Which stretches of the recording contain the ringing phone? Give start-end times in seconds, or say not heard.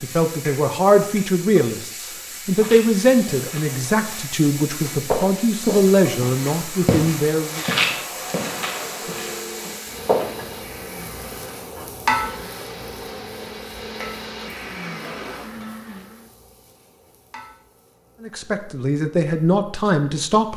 9.0-9.7.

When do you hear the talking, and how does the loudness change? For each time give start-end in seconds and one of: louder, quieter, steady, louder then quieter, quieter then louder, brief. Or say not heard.
0.0-7.6 steady
18.2-20.5 brief.